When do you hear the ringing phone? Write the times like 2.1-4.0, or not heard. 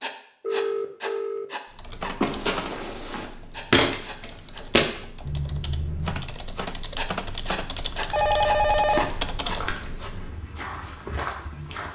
0.4-1.4, 5.2-6.3, 8.1-10.1.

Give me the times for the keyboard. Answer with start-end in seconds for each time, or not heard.
1.7-10.5.